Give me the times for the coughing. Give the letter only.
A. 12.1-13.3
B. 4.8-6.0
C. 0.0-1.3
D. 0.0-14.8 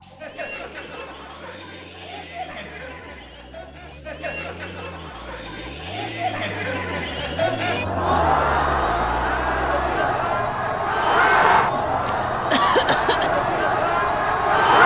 A.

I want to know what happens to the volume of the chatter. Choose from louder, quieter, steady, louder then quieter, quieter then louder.
louder.